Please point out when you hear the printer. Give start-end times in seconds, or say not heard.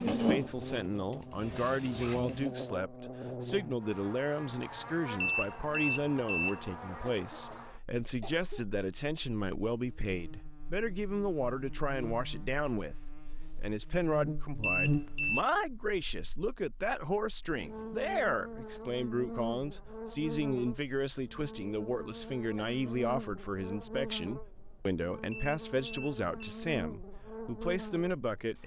0.0-2.5.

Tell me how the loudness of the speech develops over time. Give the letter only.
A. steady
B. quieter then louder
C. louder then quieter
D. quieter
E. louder
A.